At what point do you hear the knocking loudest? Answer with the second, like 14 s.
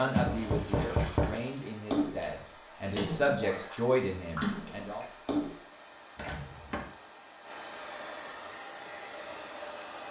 1 s.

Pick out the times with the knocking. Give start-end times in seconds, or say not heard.
0.2-1.4, 6.2-6.9.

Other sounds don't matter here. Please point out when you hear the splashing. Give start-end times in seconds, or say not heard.
0.0-5.5.